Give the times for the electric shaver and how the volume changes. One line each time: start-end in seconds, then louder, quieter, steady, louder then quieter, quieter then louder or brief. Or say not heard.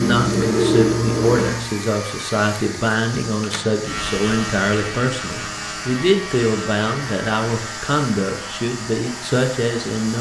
0.0-10.1 quieter.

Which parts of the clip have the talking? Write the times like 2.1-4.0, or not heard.
0.0-10.1.